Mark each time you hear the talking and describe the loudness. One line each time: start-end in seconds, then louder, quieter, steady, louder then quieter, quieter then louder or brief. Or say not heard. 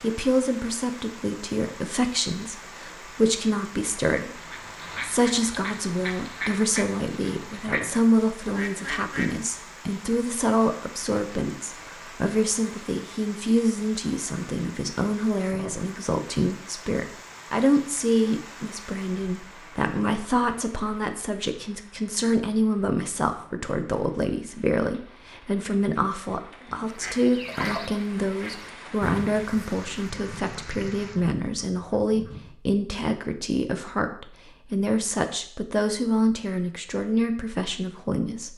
0.0-38.5 steady.